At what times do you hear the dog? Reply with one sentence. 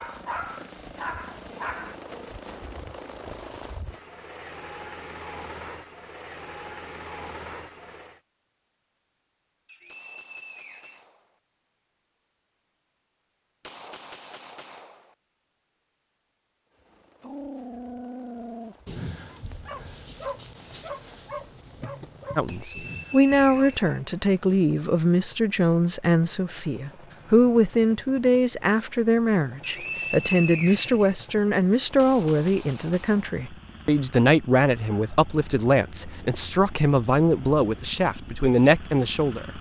You can hear the dog from 0.0 to 1.9 s and from 17.2 to 23.8 s.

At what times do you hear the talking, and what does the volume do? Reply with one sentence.
The talking can be heard from 22.4 to 39.5 s, at a steady volume.